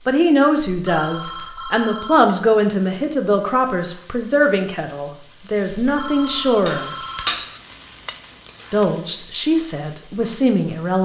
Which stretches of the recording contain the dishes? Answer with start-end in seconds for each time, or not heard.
5.8-7.6.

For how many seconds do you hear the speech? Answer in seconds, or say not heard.
9 s.